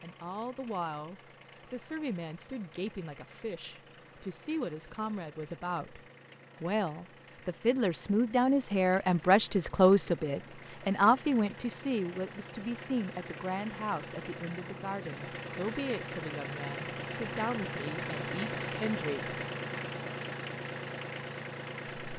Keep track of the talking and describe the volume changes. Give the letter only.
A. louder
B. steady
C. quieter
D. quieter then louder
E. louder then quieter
E.